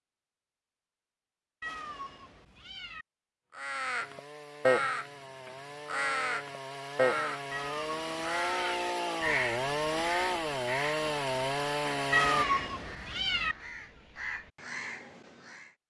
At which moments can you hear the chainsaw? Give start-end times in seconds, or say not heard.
4.0-12.4.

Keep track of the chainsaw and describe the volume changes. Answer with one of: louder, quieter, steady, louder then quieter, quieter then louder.
louder.